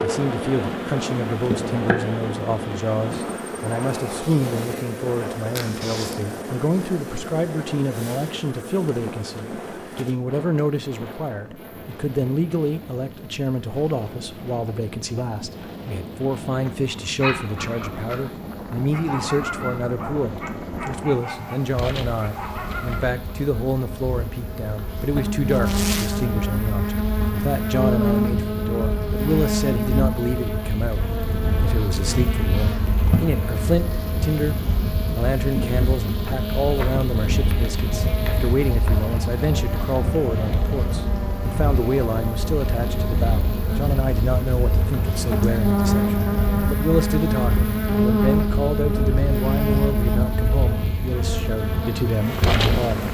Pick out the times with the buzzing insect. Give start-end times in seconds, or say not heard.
0.0-53.0.